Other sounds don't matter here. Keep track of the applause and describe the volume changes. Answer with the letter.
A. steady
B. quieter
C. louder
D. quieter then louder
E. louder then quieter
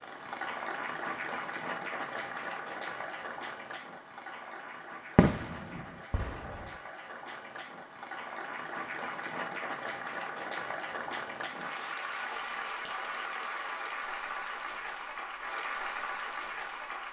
D.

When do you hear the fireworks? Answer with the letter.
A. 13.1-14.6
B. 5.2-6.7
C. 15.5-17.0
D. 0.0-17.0
B.